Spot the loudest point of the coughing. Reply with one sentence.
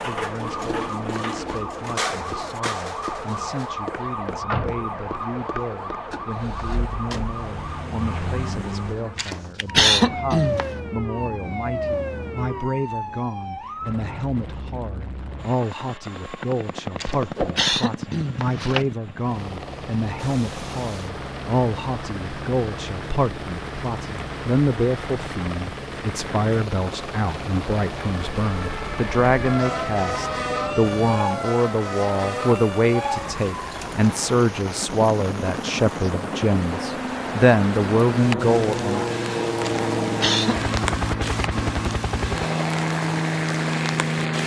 The volume of the coughing peaks at 10 seconds.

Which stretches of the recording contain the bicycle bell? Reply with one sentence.
The bicycle bell can't be heard in this clip.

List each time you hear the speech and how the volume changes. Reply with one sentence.
The speech can be heard from 0.1 to 39.0 s, getting louder.